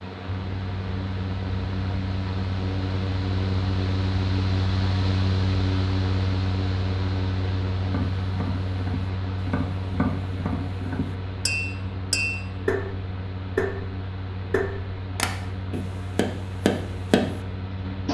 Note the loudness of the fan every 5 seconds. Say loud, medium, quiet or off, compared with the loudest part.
loud, loud, medium, medium.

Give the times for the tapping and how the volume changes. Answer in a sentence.
You can hear the tapping from 7.8 to 17.4 s, getting louder.